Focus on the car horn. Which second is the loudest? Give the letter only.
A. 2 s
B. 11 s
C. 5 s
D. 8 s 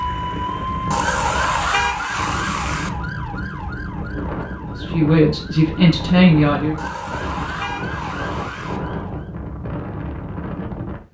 A.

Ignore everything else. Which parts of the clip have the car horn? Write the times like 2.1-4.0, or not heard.
0.9-2.9, 6.8-8.8.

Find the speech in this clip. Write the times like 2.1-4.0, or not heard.
4.7-6.8.